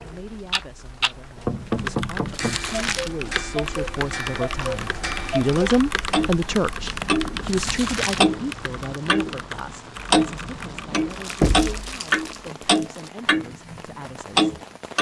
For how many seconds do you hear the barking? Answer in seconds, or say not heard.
not heard.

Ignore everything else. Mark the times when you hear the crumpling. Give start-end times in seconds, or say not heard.
2.2-3.1, 7.4-8.3, 11.1-13.1.